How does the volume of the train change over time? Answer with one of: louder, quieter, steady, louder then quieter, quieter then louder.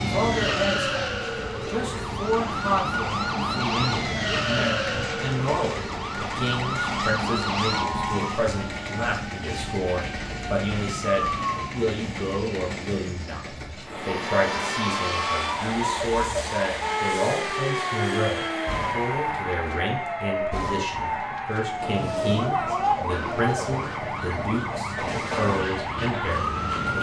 steady.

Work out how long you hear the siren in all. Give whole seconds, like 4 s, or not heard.
25 s.